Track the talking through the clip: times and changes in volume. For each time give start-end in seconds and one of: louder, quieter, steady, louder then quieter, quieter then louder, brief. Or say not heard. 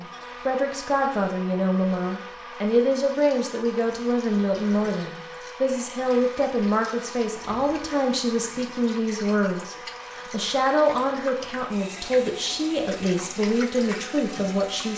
0.0-14.9 steady.